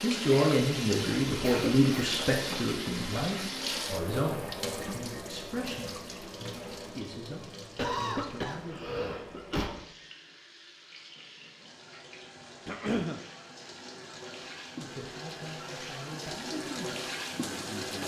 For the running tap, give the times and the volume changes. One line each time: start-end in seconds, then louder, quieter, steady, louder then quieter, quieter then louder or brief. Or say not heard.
0.0-18.0 quieter then louder.